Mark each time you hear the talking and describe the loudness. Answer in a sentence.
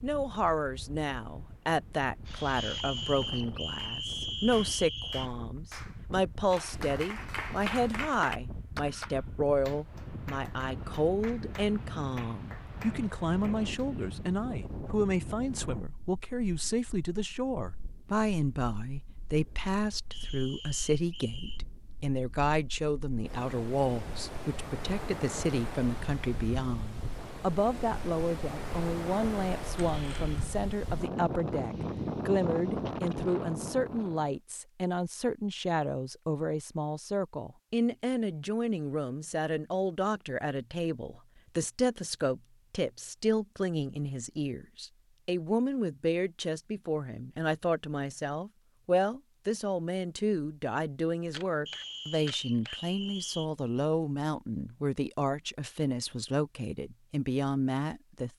The talking can be heard from 0.0 to 58.3 s, at a steady volume.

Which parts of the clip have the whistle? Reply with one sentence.
The whistle can be heard from 2.5 to 5.3 s, from 20.1 to 21.6 s and from 51.6 to 53.5 s.